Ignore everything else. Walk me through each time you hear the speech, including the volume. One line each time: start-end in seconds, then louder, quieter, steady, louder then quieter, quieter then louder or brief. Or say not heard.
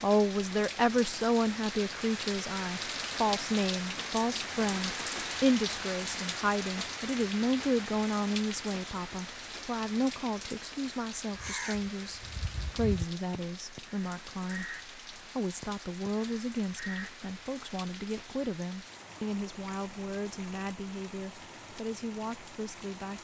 0.0-23.2 quieter.